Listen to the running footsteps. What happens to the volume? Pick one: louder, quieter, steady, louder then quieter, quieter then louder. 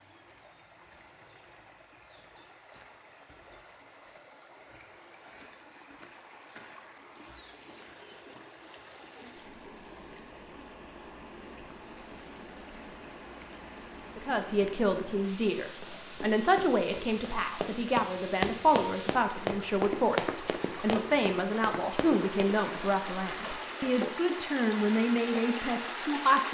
louder then quieter.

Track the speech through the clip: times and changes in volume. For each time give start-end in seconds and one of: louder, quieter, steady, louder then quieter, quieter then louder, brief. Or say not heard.
14.2-26.4 steady.